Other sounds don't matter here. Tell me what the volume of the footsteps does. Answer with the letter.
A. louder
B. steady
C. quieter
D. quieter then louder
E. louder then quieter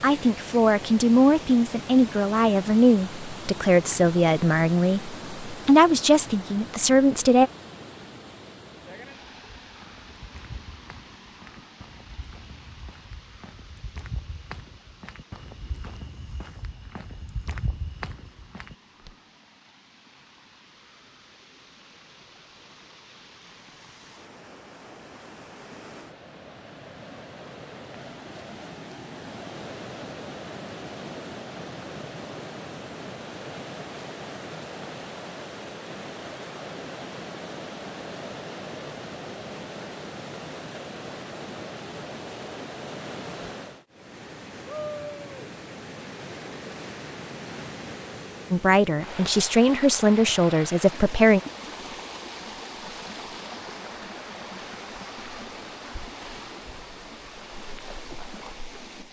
A.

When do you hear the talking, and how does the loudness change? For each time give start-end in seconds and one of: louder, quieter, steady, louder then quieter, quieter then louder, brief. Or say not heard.
0.0-7.5 steady
48.5-51.4 brief.